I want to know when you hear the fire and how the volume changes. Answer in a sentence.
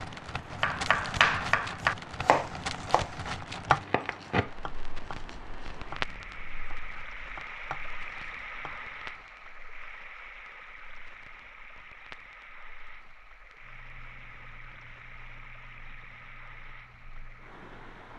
You can hear the fire from 0.0 to 18.1 s, getting quieter.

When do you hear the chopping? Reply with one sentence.
The chopping can be heard from 0.6 to 9.2 s.